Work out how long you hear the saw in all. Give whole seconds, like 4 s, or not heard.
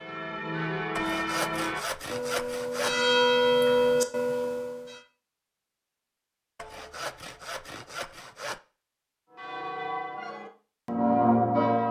4 s.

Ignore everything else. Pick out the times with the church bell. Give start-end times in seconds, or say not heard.
0.0-5.0, 9.3-11.8.